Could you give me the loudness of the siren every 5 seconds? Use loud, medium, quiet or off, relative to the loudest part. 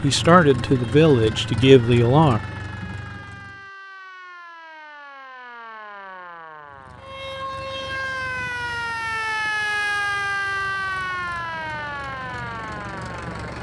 quiet, loud, loud.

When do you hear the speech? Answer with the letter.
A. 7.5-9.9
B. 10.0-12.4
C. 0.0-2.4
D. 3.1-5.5
C.